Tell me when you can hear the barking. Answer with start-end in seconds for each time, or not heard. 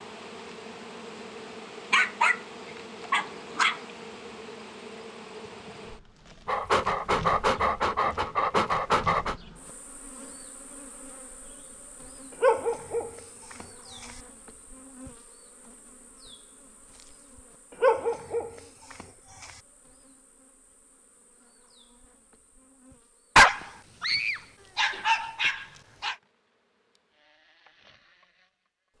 1.9-2.4, 3.1-3.8, 6.5-9.3, 12.3-14.2, 17.7-19.6, 23.4-26.1.